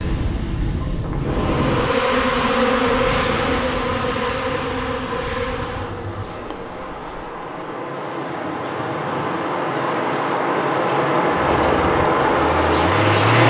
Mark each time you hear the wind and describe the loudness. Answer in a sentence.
You can hear the wind from 0.0 to 13.4 s, getting quieter then louder.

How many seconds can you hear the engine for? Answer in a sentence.
The engine can be heard for 2 seconds in total.